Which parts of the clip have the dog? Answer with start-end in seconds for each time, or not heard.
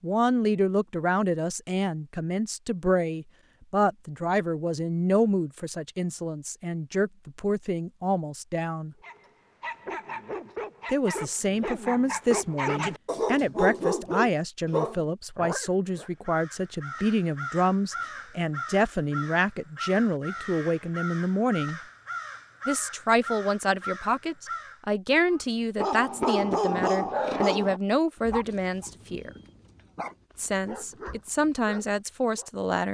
9.0-16.1, 25.8-32.5.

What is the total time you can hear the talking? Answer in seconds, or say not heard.
29 s.